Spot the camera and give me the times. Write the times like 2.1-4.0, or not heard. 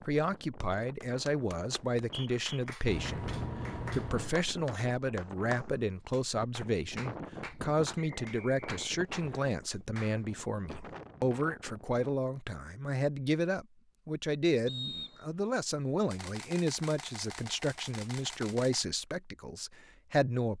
2.9-4.3, 16.1-18.9.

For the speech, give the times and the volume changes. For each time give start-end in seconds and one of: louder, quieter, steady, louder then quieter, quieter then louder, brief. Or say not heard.
0.1-20.5 steady.